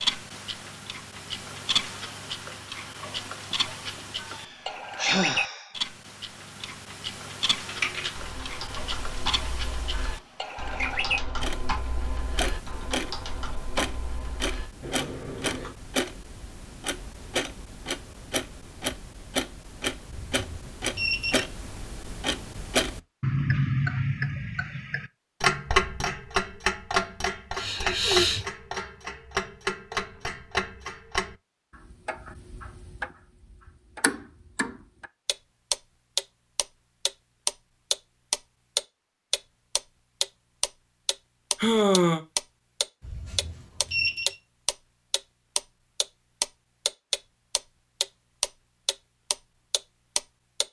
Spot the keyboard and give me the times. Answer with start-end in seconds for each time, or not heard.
7.7-15.8.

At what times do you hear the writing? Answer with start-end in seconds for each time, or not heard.
not heard.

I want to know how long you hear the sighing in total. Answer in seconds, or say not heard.
3 s.